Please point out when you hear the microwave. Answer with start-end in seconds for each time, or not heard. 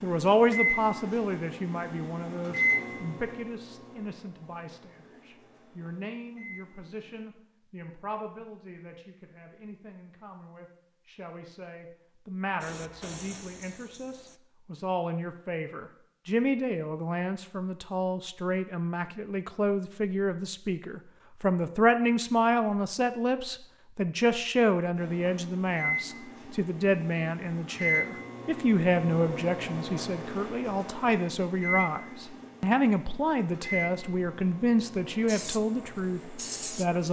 0.0-7.3, 24.9-37.0.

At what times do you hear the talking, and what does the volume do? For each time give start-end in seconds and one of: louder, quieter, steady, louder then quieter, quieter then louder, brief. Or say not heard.
0.0-37.0 quieter then louder.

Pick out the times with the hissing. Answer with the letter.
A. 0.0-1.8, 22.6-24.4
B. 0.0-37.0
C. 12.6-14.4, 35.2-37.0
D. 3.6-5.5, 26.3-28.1
C.